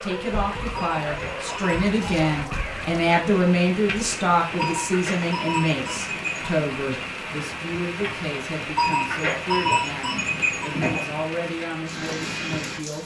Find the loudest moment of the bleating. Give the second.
10 s.